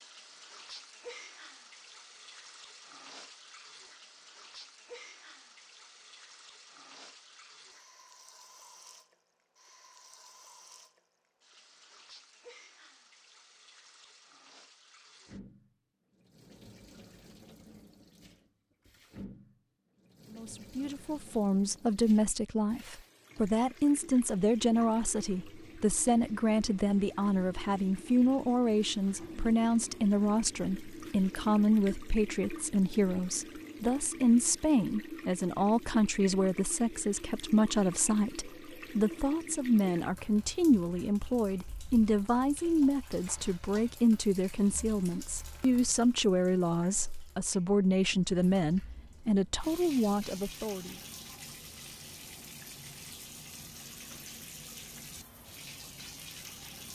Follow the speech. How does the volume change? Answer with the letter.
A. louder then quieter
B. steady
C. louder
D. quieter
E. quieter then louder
B.